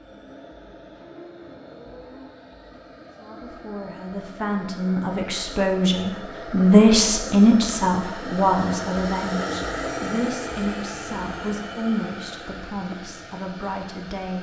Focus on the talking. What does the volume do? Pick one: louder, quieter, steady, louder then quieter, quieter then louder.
louder then quieter.